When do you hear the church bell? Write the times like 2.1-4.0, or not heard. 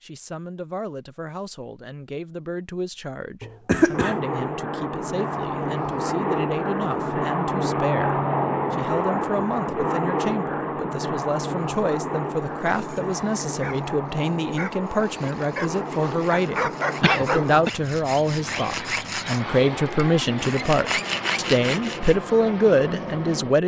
not heard.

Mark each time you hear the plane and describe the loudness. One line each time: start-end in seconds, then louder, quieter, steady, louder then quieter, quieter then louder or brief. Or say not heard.
3.9-23.6 quieter.